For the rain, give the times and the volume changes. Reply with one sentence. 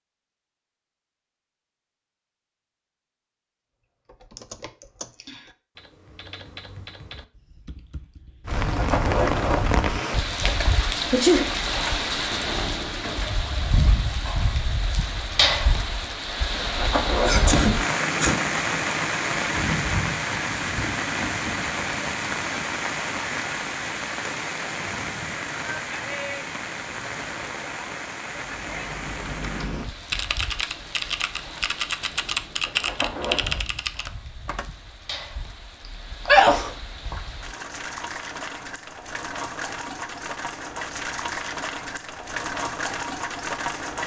You can hear the rain from 8.4 to 44.0 s, getting quieter then louder.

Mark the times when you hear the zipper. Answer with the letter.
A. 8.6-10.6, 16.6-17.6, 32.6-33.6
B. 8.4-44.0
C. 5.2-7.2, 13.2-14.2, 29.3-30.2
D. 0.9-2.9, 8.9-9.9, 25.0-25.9
A.